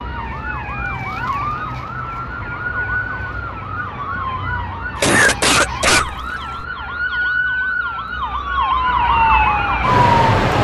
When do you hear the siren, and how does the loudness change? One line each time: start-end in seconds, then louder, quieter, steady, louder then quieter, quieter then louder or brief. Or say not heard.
0.0-10.5 louder.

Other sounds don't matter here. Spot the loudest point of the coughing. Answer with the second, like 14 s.
5 s.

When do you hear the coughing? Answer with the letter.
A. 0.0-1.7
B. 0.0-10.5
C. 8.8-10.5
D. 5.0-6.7
D.